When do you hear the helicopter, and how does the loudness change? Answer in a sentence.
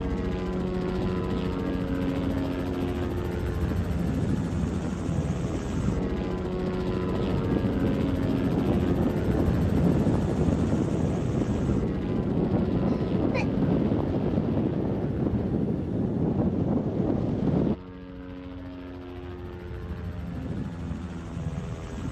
The helicopter can be heard from 0.0 to 22.0 s, getting quieter.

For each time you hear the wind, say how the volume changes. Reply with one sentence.
The wind can be heard from 0.0 to 17.8 s, getting louder.